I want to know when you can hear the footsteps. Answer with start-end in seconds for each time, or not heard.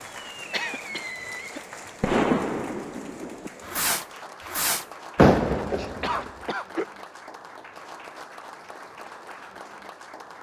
not heard.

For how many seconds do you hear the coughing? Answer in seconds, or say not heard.
2 s.